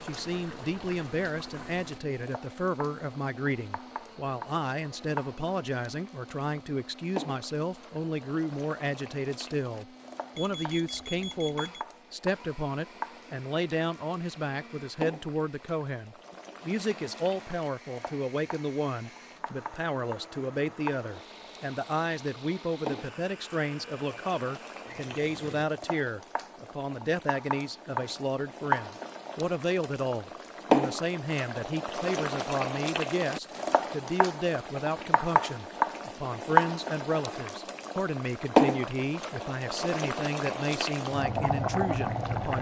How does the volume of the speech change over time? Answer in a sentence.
The volume of the speech stays about the same.